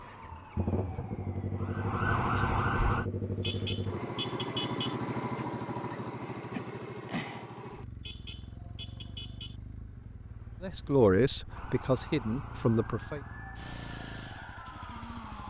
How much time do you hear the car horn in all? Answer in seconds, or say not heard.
3 s.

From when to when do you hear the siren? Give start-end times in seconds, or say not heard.
0.0-3.0, 11.5-15.4.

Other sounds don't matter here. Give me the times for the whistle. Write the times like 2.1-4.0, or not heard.
not heard.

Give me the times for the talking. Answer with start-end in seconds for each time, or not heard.
10.6-13.2.